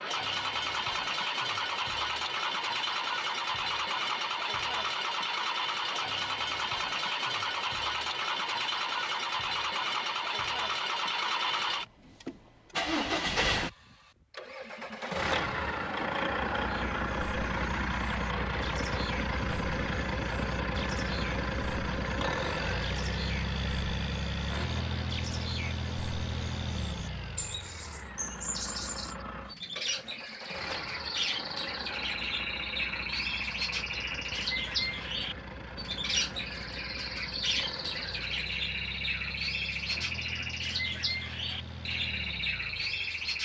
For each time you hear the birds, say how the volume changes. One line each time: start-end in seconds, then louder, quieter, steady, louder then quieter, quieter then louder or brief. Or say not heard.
16.6-43.4 louder.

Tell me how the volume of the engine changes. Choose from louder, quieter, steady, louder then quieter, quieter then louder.
quieter.